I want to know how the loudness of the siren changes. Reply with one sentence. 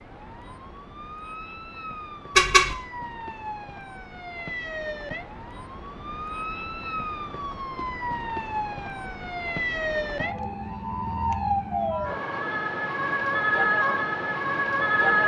The loudness of the siren goes up.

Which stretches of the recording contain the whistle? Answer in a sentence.
The whistle can't be heard in this clip.